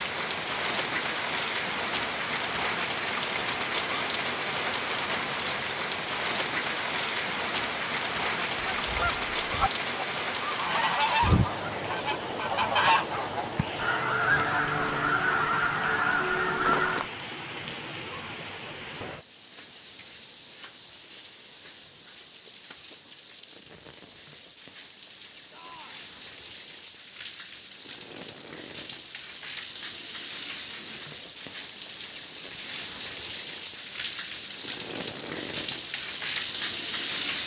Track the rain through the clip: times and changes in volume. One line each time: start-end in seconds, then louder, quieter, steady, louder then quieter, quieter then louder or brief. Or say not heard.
0.0-37.4 quieter then louder.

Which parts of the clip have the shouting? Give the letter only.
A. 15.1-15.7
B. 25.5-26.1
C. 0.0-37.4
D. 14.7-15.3
B.